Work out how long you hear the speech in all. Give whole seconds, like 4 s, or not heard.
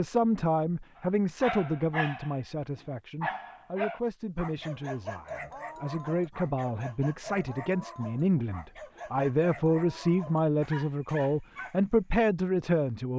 13 s.